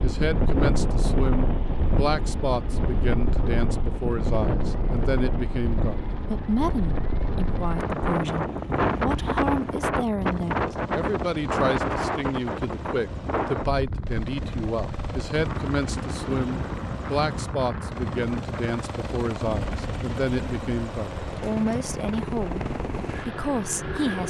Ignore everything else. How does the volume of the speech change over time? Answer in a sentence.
The volume of the speech stays about the same.